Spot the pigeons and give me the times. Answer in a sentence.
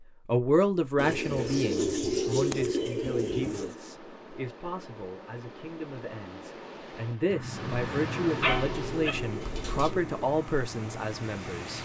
You can hear the pigeons from 0.9 to 3.8 s and from 7.5 to 10.3 s.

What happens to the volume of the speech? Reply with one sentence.
The loudness of the speech goes down, then up.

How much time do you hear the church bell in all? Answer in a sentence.
You can't hear the church bell here.